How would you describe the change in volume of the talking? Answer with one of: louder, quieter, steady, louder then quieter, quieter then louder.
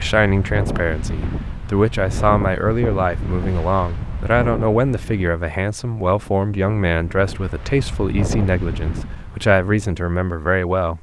steady.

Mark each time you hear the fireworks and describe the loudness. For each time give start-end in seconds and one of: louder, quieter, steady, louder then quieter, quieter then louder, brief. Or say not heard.
not heard.